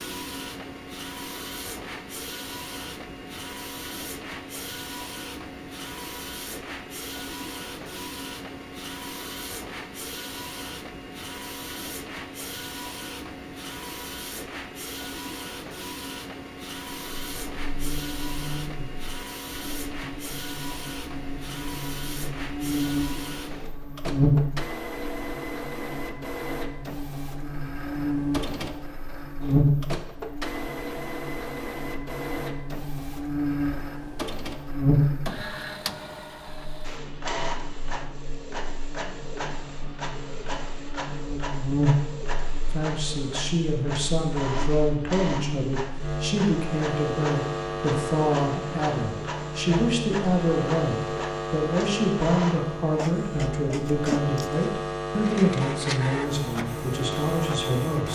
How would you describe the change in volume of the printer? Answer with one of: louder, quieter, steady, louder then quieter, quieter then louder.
steady.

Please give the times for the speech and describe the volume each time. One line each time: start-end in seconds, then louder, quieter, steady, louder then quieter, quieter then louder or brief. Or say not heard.
42.7-58.1 steady.